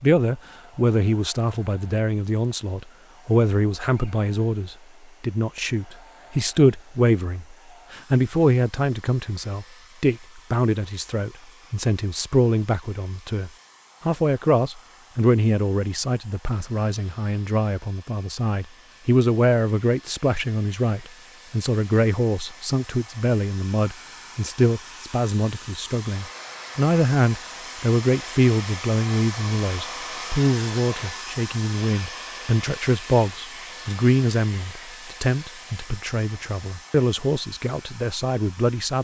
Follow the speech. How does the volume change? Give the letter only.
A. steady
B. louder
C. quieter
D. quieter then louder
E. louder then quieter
A.